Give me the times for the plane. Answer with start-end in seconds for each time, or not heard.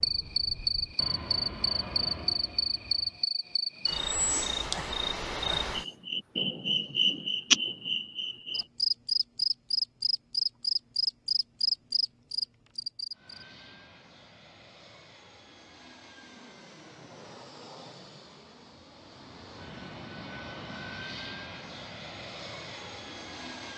0.0-3.2, 13.1-23.7.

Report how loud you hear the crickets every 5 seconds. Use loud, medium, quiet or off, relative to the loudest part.
loud, loud, loud, off, off.